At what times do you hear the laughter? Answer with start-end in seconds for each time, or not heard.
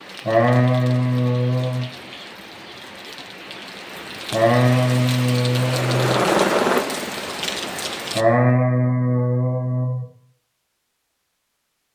0.2-1.9, 4.3-6.2, 8.2-10.1.